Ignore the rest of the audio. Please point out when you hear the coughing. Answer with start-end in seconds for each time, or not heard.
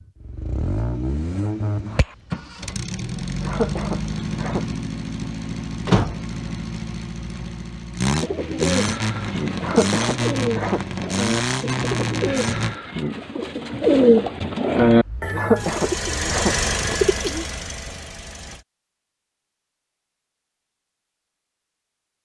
3.4-4.7, 9.6-10.8, 15.3-16.6.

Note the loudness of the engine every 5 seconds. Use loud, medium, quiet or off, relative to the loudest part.
loud, loud, loud, loud, off.